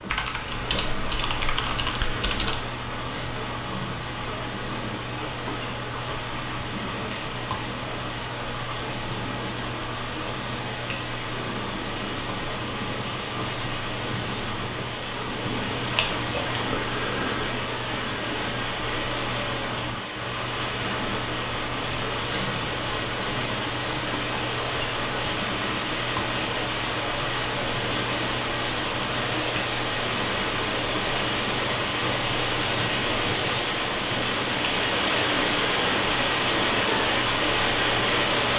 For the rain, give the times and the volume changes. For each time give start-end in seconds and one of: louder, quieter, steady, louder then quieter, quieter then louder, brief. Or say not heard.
0.0-38.5 louder.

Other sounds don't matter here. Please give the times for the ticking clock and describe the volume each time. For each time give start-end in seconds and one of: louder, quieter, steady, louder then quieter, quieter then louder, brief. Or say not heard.
0.0-38.5 steady.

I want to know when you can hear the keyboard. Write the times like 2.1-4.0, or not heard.
0.1-2.6.